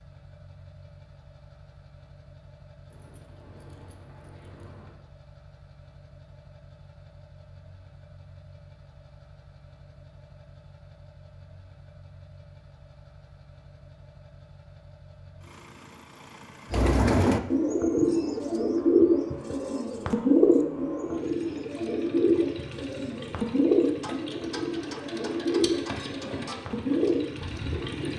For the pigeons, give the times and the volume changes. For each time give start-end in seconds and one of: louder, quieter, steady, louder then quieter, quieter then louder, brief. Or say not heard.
16.7-28.1 quieter.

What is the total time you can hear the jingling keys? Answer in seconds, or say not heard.
2 s.